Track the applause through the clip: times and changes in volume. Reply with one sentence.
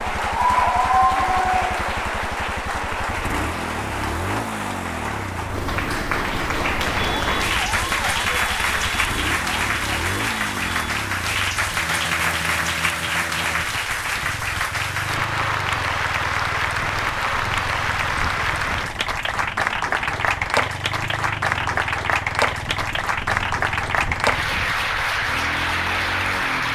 The applause can be heard from 0.0 to 26.6 s, at a steady volume.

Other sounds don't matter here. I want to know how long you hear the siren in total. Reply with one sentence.
The siren can be heard for 4 seconds in total.